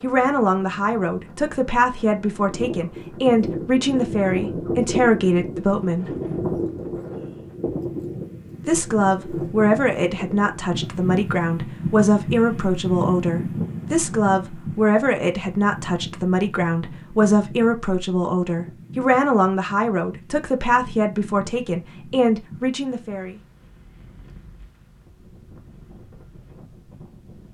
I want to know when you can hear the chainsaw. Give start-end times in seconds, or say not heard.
not heard.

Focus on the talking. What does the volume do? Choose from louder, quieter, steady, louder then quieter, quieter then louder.
steady.